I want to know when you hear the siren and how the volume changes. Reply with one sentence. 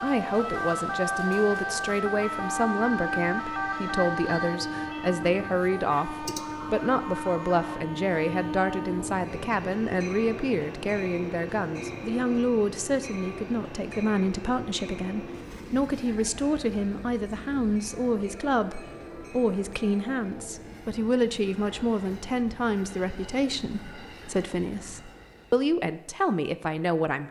You can hear the siren from 0.0 to 7.8 s, getting quieter.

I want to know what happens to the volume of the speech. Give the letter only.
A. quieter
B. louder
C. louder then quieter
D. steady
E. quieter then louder
D.